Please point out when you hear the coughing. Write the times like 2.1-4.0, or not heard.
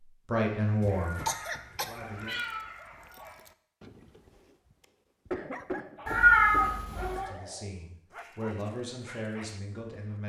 0.8-2.0, 5.3-7.2.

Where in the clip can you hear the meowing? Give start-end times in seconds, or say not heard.
1.0-3.2, 6.0-7.3.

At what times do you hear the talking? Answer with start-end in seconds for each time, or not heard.
0.2-2.4, 7.2-10.2.